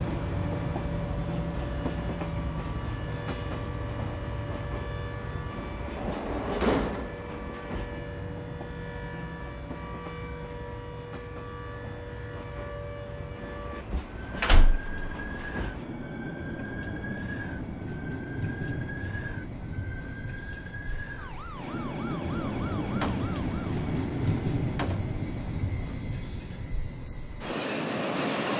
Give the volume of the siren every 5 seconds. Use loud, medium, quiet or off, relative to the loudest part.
loud, loud, loud, loud, loud, off.